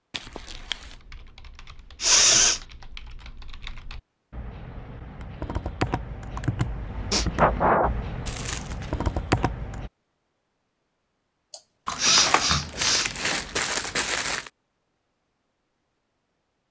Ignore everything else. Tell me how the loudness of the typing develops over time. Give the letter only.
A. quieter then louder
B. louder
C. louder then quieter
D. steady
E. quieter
B.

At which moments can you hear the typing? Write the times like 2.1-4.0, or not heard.
0.2-9.9.